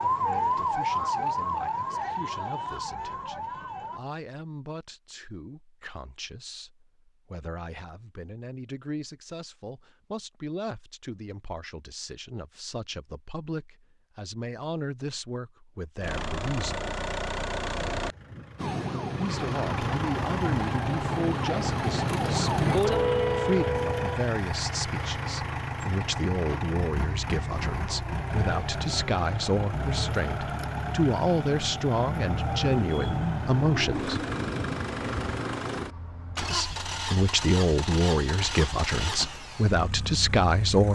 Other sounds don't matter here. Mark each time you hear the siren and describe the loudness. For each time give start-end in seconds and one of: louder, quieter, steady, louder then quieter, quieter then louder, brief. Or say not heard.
0.0-4.0 quieter
18.6-24.2 louder.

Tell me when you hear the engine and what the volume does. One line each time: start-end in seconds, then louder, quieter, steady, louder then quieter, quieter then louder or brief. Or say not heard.
16.0-40.9 steady.